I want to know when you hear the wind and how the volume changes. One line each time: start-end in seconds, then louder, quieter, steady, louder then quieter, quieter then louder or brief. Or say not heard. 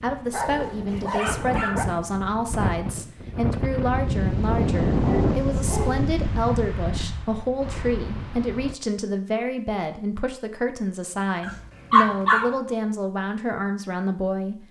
0.0-8.8 louder then quieter.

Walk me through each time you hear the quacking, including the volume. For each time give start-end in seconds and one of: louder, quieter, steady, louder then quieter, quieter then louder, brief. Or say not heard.
not heard.